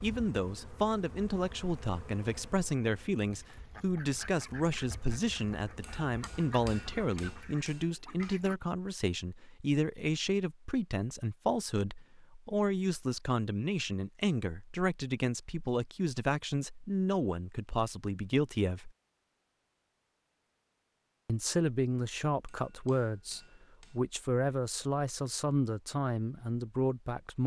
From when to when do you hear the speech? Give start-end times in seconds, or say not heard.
0.0-18.9, 21.2-27.4.